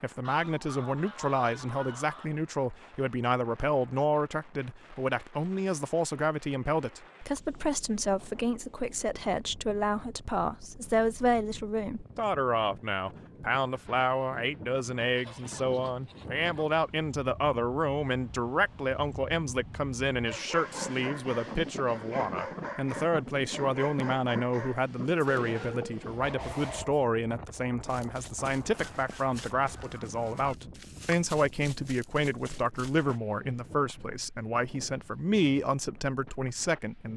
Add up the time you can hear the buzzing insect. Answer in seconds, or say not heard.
not heard.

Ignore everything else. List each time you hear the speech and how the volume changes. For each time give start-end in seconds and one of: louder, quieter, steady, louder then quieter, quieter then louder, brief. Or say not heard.
0.0-37.1 steady.